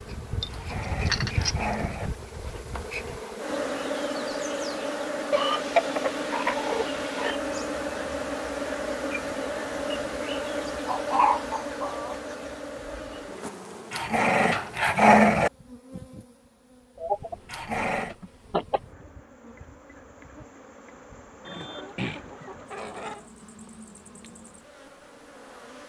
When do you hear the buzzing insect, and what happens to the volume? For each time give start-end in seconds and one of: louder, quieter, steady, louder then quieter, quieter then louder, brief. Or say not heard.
0.0-25.8 quieter.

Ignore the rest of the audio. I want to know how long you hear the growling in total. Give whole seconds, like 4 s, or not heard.
4 s.